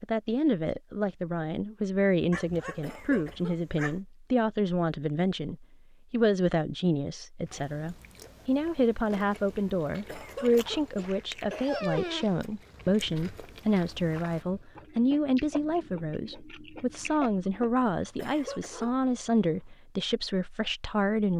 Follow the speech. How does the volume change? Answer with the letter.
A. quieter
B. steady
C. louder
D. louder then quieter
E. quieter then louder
B.